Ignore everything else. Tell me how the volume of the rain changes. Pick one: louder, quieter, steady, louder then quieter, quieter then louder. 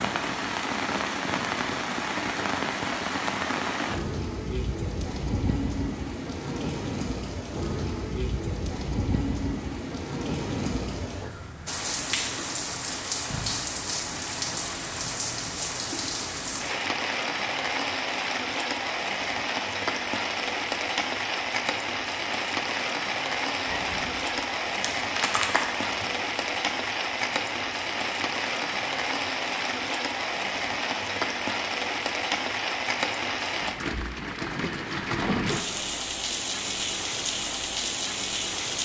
steady.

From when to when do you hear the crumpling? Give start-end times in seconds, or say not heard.
23.6-26.1.